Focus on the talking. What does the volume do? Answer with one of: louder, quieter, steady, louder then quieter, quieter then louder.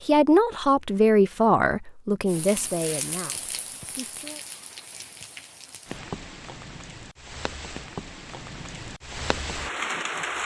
quieter.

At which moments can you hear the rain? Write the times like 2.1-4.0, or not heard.
2.2-10.4.